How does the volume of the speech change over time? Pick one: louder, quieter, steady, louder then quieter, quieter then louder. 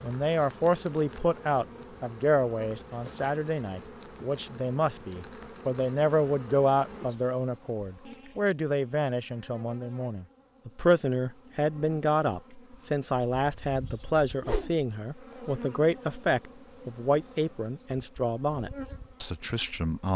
steady.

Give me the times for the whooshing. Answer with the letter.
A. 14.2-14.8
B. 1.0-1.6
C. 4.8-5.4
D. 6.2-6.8
A.